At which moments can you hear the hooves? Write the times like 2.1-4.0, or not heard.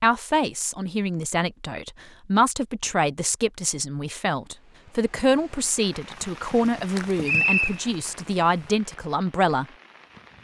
6.2-8.8.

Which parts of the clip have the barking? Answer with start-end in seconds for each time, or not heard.
not heard.